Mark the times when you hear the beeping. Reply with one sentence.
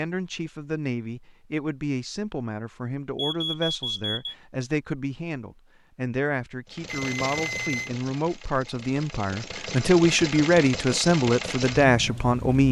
You can hear the beeping from 3.1 to 4.3 s and from 6.9 to 7.9 s.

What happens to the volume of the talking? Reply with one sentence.
The loudness of the talking goes up.